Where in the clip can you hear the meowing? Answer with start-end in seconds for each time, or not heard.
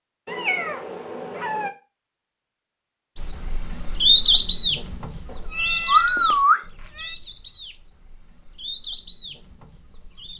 0.2-1.7, 5.2-7.2.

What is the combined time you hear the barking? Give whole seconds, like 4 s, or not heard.
not heard.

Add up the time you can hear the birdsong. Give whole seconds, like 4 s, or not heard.
7 s.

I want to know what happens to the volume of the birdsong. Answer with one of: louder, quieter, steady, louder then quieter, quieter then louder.
quieter then louder.